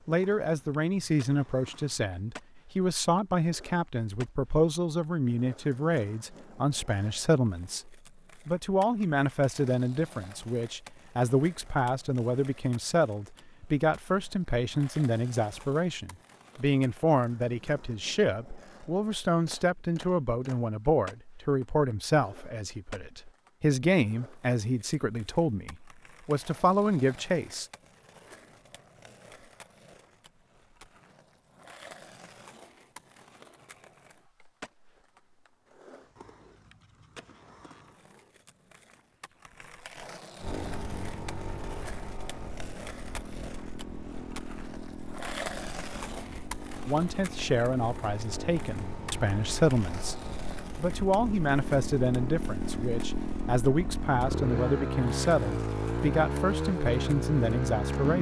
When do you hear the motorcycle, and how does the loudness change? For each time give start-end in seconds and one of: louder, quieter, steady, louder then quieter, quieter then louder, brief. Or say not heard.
40.4-58.1 louder.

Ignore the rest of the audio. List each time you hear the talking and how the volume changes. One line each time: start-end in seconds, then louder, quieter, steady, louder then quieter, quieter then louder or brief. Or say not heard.
0.1-27.6 steady
46.9-58.1 steady.